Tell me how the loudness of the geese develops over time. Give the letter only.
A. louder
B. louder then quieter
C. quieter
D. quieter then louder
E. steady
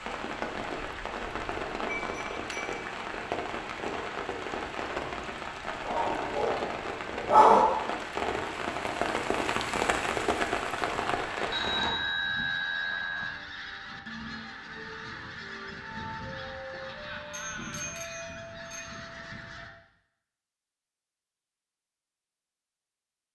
E.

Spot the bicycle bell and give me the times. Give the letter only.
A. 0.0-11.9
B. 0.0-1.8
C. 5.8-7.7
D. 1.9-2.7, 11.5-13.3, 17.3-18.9
D.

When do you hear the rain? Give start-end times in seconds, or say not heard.
0.0-11.9.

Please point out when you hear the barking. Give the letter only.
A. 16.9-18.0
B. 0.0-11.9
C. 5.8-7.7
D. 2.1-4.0
C.